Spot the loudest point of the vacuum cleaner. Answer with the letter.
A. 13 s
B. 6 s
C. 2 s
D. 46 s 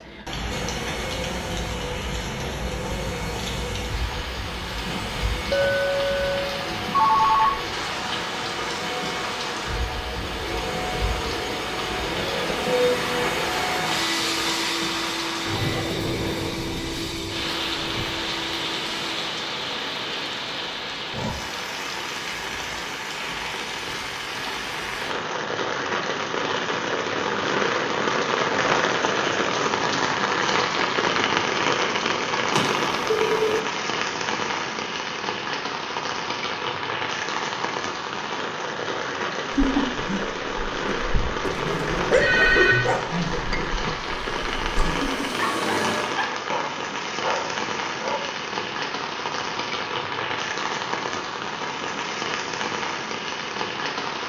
A.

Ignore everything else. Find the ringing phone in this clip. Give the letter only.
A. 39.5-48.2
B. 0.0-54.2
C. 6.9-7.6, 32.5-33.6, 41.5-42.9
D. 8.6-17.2
C.